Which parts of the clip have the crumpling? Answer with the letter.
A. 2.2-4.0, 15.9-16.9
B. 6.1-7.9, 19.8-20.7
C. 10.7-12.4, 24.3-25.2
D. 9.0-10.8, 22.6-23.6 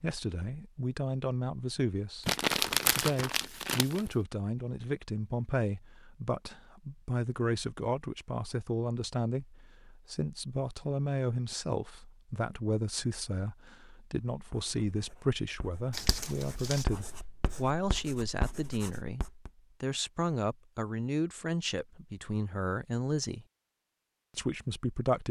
A.